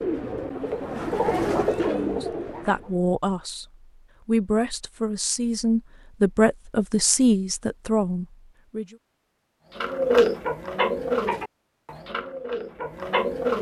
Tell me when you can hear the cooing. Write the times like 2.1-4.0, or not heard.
0.0-2.9, 9.8-13.5.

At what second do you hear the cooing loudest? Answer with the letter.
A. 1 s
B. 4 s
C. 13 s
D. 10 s
D.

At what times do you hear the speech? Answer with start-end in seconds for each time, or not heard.
1.9-8.9.